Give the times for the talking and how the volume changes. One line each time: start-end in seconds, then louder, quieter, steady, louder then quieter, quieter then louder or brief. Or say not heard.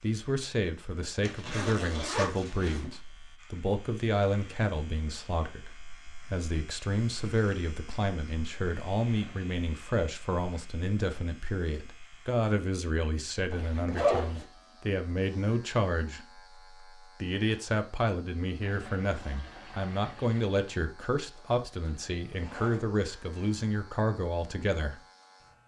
0.0-16.4 steady
17.2-25.0 steady.